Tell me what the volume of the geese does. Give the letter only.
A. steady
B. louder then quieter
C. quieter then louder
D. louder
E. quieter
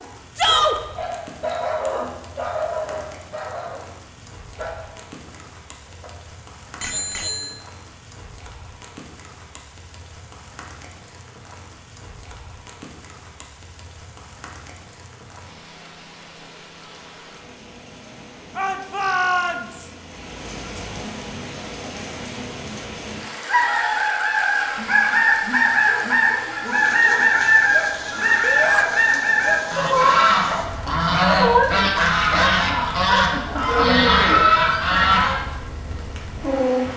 A.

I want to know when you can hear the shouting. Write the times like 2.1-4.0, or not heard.
0.3-0.8, 18.6-19.9, 28.4-28.9.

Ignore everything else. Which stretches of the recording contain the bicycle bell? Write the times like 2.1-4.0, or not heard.
6.8-7.6.